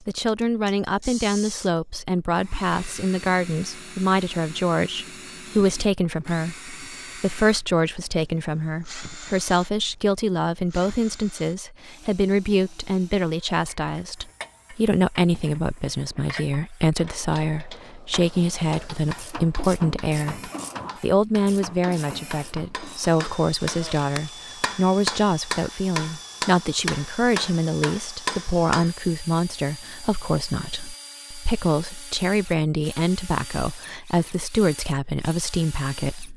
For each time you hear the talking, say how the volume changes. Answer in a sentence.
You can hear the talking from 0.1 to 36.3 s, at a steady volume.